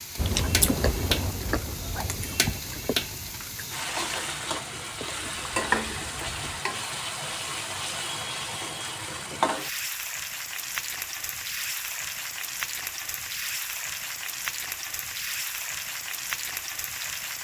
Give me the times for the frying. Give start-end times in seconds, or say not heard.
0.0-17.3.